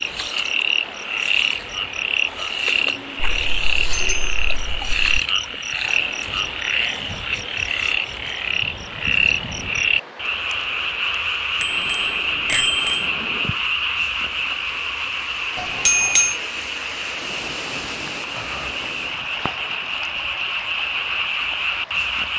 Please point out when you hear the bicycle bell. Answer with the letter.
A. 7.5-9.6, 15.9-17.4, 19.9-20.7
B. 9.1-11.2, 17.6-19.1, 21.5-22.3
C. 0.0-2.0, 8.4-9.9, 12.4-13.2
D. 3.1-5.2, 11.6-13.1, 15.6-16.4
D.